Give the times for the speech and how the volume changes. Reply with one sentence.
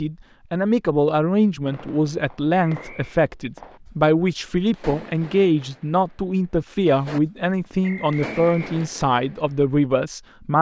You can hear the speech from 0.0 to 10.5 s, at a steady volume.